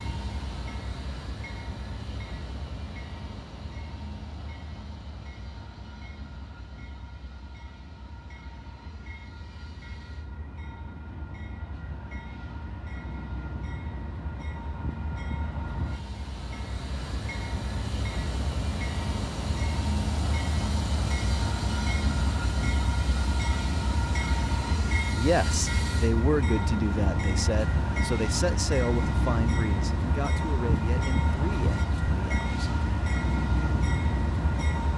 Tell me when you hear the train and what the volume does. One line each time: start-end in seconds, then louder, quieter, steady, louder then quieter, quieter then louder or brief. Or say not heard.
0.0-34.9 louder.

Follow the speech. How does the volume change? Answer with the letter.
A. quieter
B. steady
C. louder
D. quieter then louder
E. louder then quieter
A.